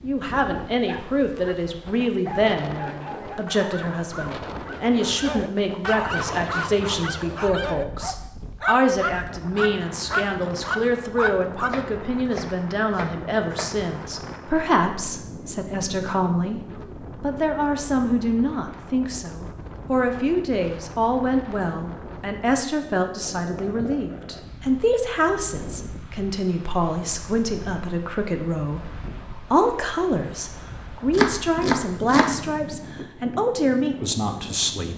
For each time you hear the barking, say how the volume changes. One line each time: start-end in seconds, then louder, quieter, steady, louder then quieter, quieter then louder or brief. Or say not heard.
0.7-11.8 louder.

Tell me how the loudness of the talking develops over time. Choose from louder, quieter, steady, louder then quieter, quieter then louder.
steady.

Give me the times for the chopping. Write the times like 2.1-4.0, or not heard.
11.7-14.2, 31.1-32.4.